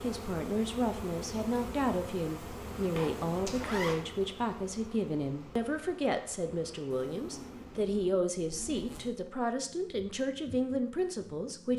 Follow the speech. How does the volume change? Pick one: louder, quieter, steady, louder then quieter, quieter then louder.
steady.